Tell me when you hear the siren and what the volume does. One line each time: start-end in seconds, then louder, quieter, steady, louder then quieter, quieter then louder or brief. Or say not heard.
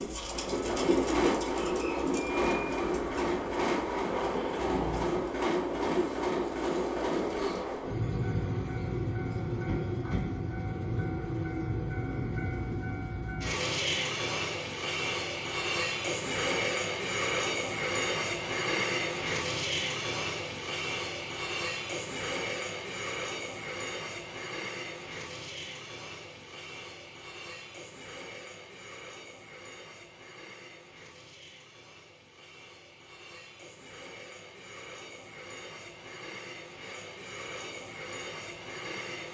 not heard.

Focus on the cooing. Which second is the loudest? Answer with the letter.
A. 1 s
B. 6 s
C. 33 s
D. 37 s
A.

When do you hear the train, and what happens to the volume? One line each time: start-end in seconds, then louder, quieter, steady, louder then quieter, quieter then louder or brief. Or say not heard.
0.0-39.2 quieter.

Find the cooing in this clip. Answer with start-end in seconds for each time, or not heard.
0.0-7.7.